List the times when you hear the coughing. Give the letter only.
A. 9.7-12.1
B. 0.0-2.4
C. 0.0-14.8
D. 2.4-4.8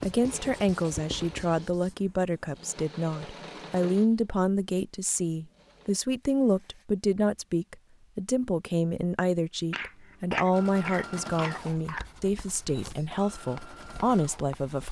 A.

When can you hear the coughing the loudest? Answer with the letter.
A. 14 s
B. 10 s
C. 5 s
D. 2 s
B.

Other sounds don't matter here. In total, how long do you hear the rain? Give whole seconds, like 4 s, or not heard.
not heard.